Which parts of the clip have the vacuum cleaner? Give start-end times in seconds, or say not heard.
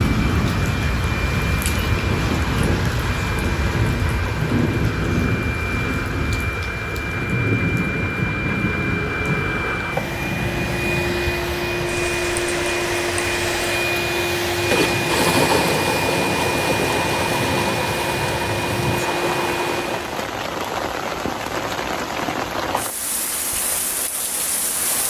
0.0-20.2.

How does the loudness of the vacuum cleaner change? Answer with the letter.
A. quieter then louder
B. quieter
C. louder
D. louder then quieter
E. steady
C.